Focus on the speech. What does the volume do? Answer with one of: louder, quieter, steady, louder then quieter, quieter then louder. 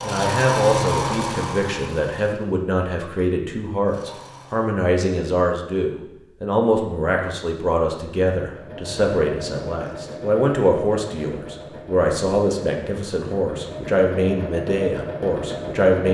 steady.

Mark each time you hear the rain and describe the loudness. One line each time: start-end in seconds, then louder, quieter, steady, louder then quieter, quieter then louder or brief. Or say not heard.
not heard.